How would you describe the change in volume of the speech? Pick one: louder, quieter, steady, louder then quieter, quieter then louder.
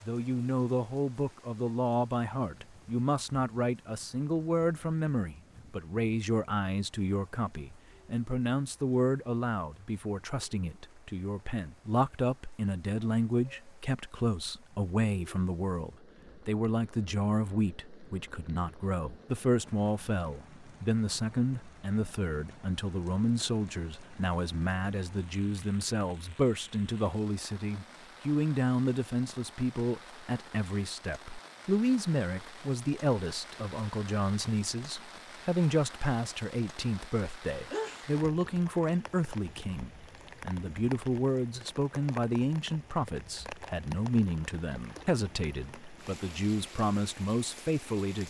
steady.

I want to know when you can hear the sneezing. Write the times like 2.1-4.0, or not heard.
37.7-38.5.